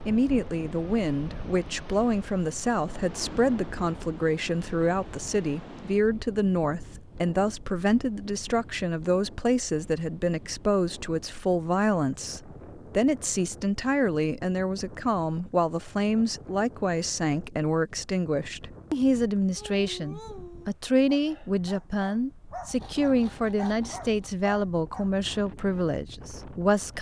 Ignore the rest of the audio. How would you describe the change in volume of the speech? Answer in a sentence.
The loudness of the speech stays about the same.